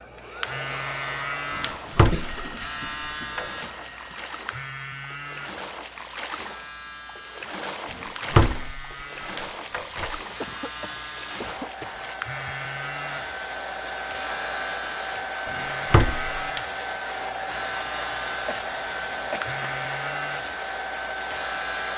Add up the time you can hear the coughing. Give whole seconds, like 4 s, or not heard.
6 s.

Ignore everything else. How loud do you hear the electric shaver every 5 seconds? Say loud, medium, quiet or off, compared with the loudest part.
loud, medium, loud, loud, loud.